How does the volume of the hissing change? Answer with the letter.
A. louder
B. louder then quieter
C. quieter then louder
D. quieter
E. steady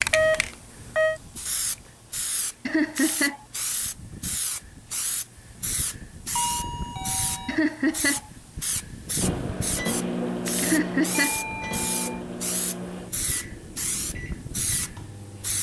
E.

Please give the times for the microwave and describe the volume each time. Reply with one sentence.
You can hear the microwave from 9.2 to 15.5 s, getting quieter.